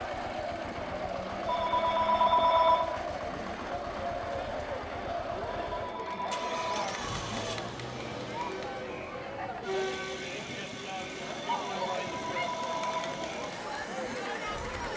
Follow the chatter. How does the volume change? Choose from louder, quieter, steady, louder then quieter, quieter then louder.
steady.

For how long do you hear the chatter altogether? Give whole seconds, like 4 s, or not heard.
15 s.